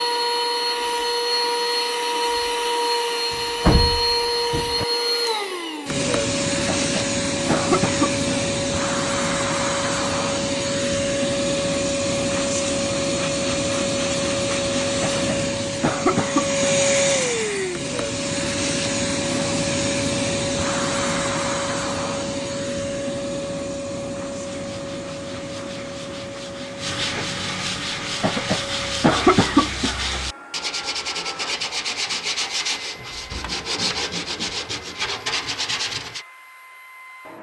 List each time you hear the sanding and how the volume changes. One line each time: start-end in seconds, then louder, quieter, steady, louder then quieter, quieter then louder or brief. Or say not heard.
24.3-36.2 louder.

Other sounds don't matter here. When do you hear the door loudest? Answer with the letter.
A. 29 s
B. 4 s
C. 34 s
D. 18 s
B.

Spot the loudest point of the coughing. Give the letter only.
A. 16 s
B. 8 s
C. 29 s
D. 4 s
C.